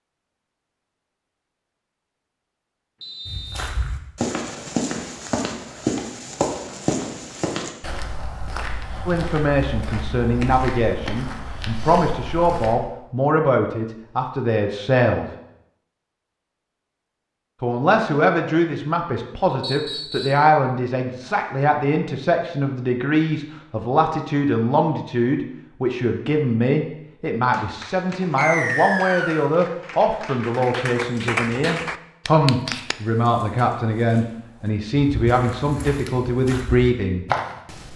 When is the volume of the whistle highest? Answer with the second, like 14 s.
29 s.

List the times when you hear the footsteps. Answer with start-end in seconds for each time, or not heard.
3.2-12.8, 32.6-37.9.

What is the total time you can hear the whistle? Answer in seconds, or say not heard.
3 s.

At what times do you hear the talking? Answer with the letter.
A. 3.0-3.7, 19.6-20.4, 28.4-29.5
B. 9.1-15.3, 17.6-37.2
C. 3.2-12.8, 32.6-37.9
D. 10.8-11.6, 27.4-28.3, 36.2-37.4
B.